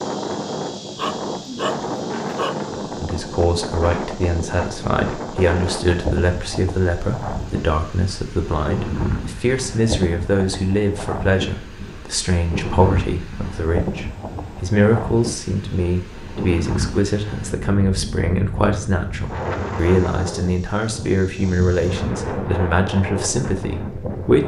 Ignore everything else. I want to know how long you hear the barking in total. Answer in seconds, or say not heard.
2 s.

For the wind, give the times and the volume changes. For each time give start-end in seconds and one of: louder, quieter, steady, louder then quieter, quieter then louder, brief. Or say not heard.
0.0-24.4 steady.